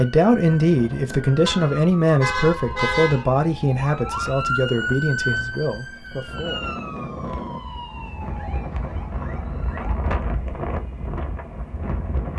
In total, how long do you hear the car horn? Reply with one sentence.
You can hear the car horn for 2 seconds altogether.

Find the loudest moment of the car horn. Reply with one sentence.
The volume of the car horn peaks at 3 seconds.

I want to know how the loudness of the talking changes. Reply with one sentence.
The volume of the talking goes down.